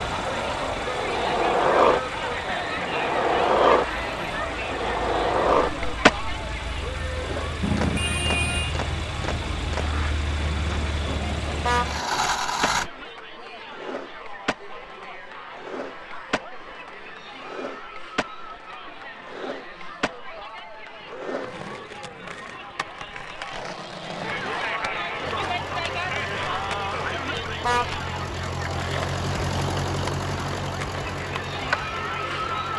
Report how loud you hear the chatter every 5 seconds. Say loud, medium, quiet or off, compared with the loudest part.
loud, medium, medium, medium, medium, loud, loud.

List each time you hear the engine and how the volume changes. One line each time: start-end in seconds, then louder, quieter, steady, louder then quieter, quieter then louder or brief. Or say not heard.
0.0-12.9 louder
25.2-32.7 louder then quieter.